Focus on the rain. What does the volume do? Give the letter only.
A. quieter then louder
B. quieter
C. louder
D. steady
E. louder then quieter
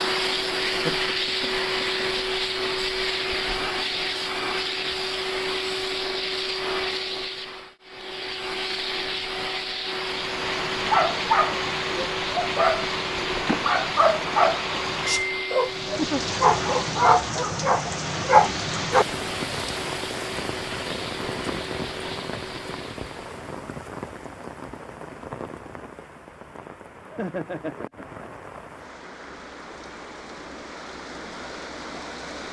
B.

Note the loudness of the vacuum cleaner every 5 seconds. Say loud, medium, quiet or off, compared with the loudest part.
loud, loud, medium, medium, medium, off, off.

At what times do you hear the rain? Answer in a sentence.
The rain can be heard from 10.0 to 32.4 s.